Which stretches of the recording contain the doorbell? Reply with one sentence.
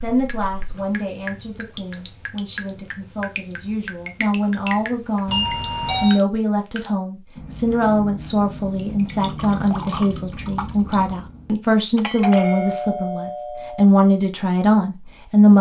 The doorbell can be heard from 5.2 to 6.2 s and from 11.9 to 13.8 s.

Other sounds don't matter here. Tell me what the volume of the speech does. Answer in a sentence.
The loudness of the speech goes up.